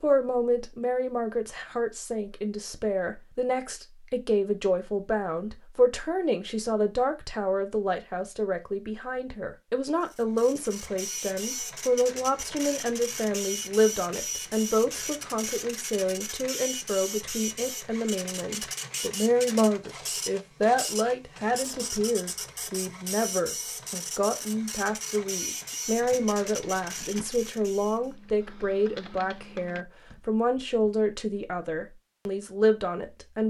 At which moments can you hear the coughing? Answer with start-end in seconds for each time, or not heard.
not heard.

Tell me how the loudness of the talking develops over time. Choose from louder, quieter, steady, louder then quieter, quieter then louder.
steady.